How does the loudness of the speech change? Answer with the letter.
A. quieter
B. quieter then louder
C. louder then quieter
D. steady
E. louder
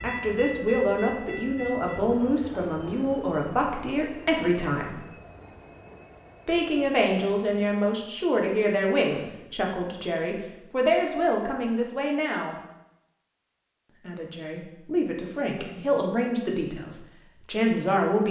D.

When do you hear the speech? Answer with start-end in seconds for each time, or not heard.
0.0-5.0, 6.5-12.6, 13.9-18.2.